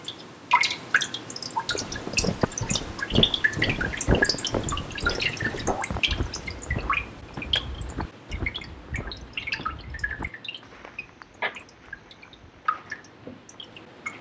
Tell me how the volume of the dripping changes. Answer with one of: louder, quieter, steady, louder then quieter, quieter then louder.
quieter.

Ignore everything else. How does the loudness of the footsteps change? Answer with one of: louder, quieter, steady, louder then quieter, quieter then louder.
quieter.